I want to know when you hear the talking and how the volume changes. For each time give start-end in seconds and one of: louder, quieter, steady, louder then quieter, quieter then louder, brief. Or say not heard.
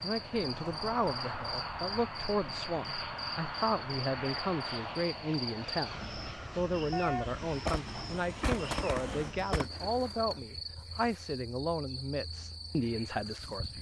0.0-13.7 steady.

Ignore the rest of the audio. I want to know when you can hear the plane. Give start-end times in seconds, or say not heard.
0.0-9.3.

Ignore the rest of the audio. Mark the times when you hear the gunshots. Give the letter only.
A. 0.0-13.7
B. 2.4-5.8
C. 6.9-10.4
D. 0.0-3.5
C.